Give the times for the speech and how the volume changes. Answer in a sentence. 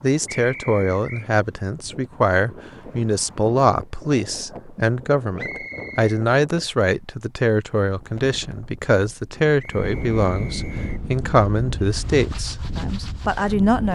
The speech can be heard from 0.0 to 13.9 s, at a steady volume.